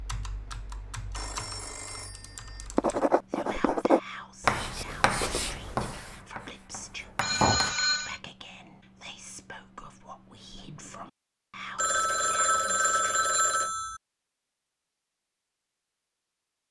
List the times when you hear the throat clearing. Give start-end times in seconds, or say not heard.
not heard.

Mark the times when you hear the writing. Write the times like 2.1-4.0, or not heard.
2.8-7.8.